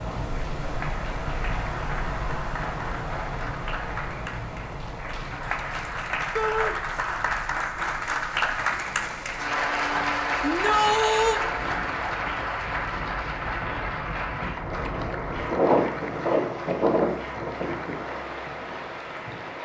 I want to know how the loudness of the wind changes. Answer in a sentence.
The volume of the wind goes down, then up.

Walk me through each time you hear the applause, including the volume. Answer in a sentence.
The applause can be heard from 0.2 to 19.6 s, getting louder then quieter.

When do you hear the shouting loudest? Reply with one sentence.
The volume of the shouting peaks at 11 seconds.